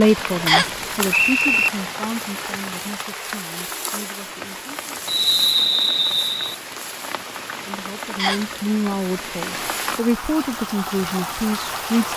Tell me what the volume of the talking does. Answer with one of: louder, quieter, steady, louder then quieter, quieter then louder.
quieter then louder.